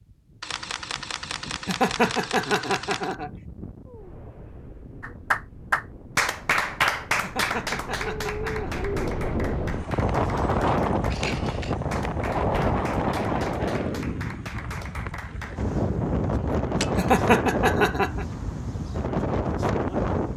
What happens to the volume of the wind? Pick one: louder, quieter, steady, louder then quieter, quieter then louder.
louder.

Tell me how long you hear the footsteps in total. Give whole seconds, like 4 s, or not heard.
not heard.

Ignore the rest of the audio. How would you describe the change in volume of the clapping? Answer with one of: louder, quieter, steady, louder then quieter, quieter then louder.
quieter.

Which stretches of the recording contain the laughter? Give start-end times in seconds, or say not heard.
1.6-3.3, 7.2-8.8, 16.9-18.2.